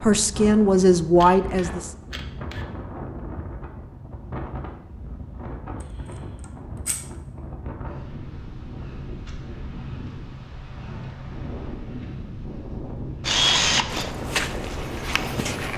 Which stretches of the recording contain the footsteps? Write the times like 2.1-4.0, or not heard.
13.9-15.7.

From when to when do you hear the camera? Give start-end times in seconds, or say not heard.
1.1-2.6, 5.8-7.1, 13.2-14.2.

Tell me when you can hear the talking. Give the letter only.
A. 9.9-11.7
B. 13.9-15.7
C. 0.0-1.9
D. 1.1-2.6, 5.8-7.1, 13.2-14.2
C.